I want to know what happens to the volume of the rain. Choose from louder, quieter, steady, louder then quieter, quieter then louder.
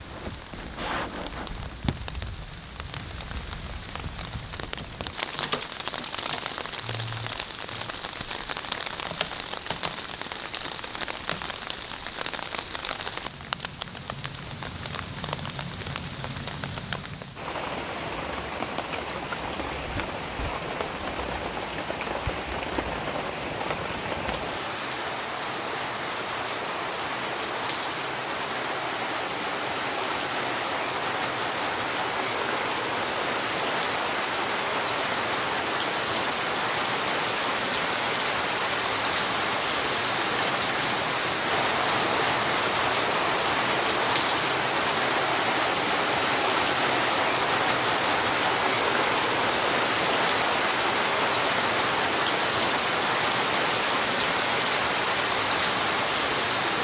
louder.